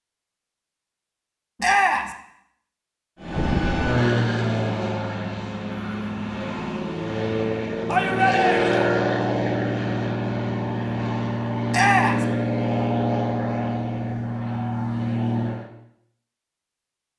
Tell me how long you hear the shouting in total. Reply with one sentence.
The shouting can be heard for 2 seconds in total.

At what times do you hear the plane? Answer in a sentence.
You can hear the plane from 3.2 to 15.7 s.